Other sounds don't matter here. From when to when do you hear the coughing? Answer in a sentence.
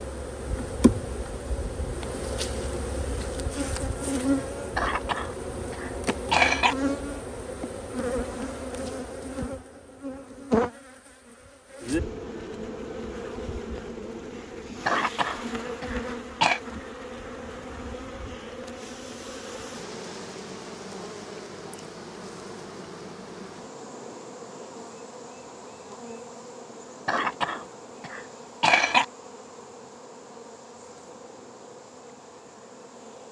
You can hear the coughing from 4.8 to 6.8 s, from 14.8 to 16.6 s and from 27.1 to 29.1 s.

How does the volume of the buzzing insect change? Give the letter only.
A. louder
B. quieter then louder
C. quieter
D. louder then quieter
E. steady
C.